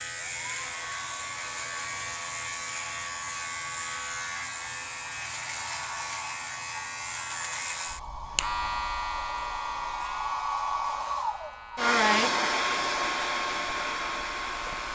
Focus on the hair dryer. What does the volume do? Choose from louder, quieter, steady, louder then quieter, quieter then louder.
louder.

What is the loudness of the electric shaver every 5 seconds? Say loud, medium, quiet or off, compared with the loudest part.
loud, loud, medium.